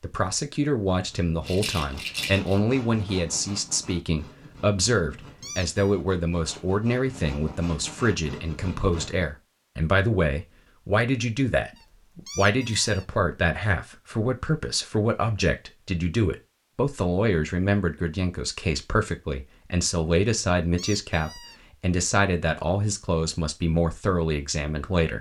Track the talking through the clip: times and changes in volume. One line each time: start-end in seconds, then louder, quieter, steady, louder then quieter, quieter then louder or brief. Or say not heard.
0.0-25.1 steady.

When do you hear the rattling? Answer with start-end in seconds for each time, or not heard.
1.4-2.6.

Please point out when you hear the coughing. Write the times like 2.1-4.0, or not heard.
not heard.